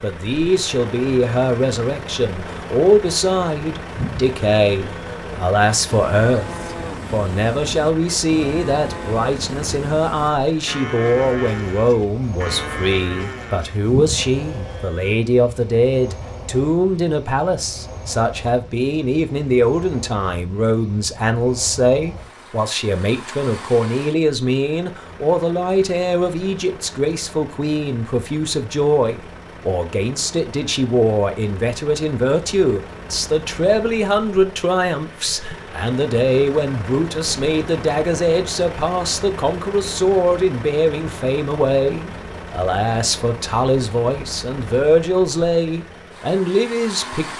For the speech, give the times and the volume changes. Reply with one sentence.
The speech can be heard from 0.0 to 47.3 s, at a steady volume.